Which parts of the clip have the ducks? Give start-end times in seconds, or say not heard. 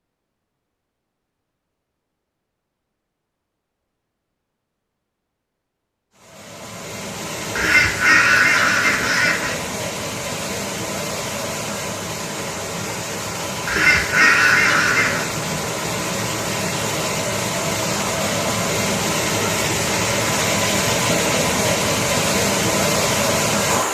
7.5-9.6, 13.7-15.2.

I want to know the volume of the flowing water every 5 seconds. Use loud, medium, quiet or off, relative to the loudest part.
off, medium, medium, loud, loud.